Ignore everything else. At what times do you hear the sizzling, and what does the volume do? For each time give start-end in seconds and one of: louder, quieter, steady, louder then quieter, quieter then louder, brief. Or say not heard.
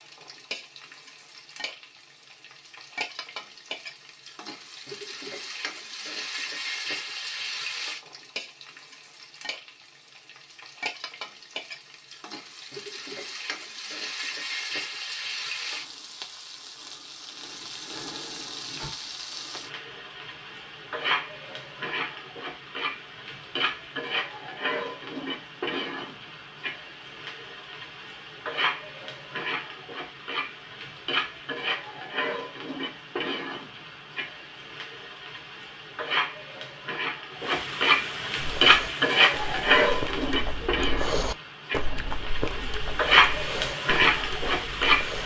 0.0-45.2 louder.